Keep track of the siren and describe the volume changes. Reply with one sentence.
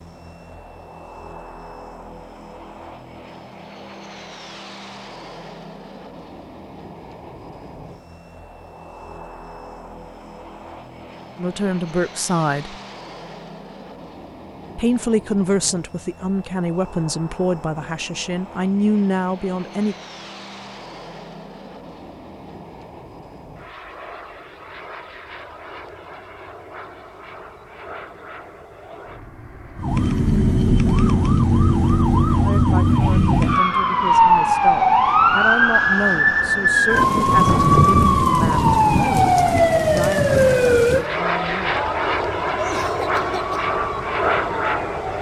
The volume of the siren goes down.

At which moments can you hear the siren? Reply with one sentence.
The siren can be heard from 29.8 to 45.1 s.